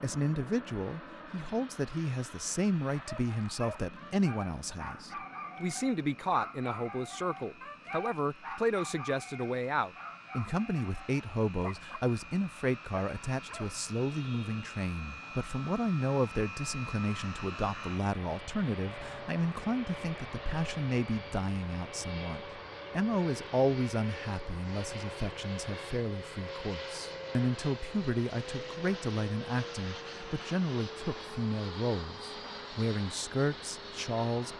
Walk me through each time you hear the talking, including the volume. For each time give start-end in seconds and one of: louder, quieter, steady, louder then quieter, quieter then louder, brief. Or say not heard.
0.0-34.5 steady.